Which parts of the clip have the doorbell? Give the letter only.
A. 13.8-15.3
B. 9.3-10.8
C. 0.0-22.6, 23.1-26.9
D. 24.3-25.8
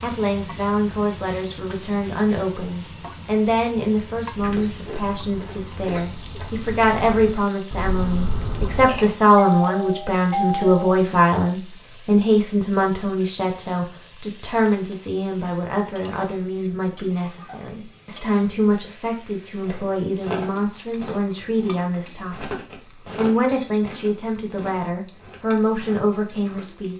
B.